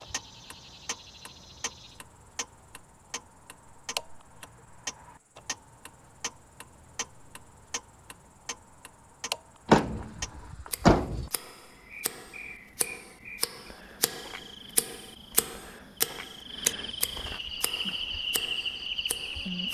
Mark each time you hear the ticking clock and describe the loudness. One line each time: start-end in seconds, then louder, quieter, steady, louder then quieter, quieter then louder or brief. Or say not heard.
0.0-19.6 louder.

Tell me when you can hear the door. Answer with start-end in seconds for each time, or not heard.
9.7-11.3.